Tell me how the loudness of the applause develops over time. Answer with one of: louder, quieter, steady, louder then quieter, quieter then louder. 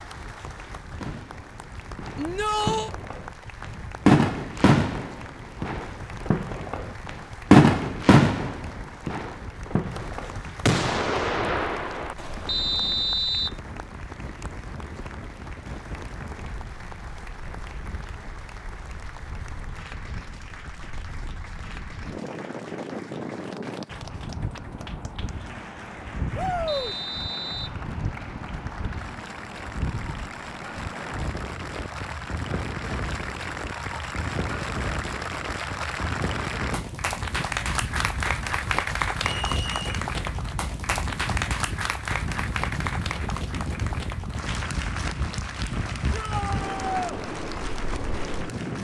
louder.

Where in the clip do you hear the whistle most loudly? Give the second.
13 s.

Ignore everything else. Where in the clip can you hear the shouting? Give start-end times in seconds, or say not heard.
2.1-2.9, 26.4-26.9, 46.1-47.1.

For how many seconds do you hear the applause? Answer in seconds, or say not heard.
49 s.